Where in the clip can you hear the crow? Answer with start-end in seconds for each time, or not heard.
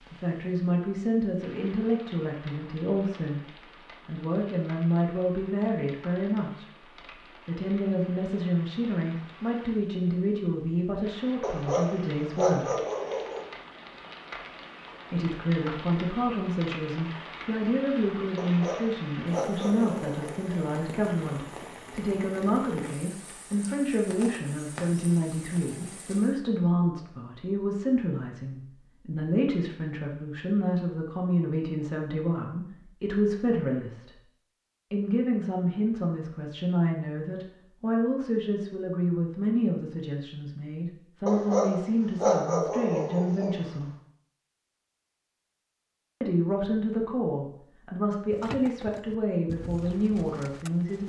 not heard.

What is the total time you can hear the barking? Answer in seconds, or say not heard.
7 s.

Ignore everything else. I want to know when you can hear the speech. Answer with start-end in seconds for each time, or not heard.
0.1-6.7, 7.5-12.8, 15.1-34.2, 34.9-43.9, 46.2-51.0.